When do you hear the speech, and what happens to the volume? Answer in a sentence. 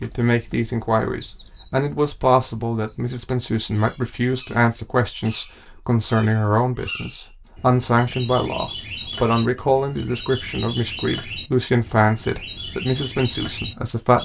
You can hear the speech from 0.0 to 14.2 s, at a steady volume.